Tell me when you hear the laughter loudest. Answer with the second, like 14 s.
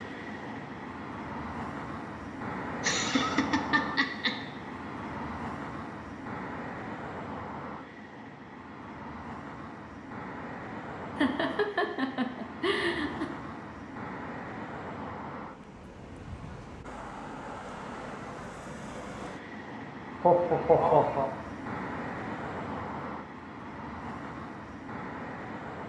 21 s.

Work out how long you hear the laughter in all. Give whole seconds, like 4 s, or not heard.
5 s.